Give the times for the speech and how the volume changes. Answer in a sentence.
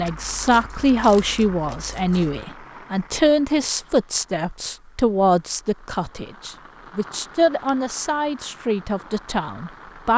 You can hear the speech from 0.0 to 10.1 s, getting quieter.